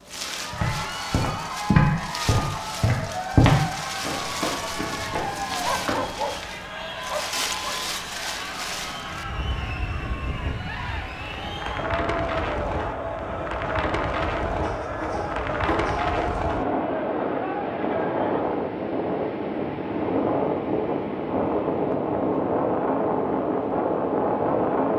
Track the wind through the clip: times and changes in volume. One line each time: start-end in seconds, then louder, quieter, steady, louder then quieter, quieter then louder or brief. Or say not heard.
0.0-24.9 louder.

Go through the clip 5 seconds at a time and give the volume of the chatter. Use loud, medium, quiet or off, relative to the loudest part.
loud, loud, loud, loud, off.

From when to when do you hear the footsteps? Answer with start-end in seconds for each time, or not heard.
0.5-6.0.